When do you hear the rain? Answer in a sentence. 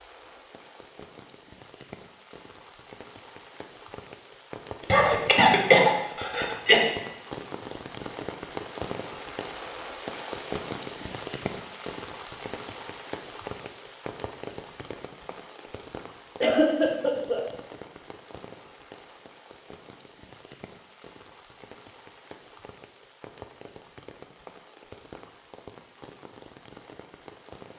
The rain can be heard from 0.0 to 27.7 s.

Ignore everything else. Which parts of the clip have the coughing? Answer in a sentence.
The coughing can be heard from 4.8 to 6.8 s and from 16.4 to 17.4 s.